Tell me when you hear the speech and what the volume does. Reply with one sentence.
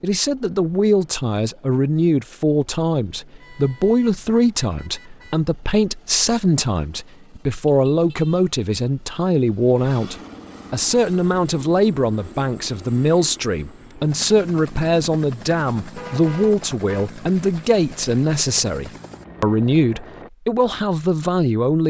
The speech can be heard from 0.0 to 21.8 s, at a steady volume.